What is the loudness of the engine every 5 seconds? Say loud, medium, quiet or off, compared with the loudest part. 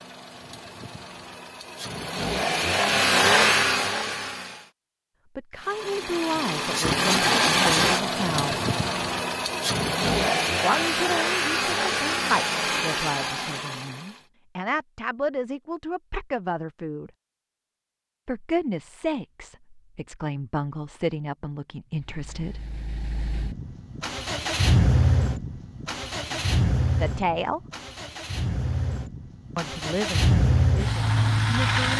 loud, loud, loud, off, medium, medium, loud.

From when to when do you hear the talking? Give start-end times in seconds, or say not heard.
5.3-8.6, 10.6-17.1, 18.2-22.6, 26.3-27.6, 29.6-31.9.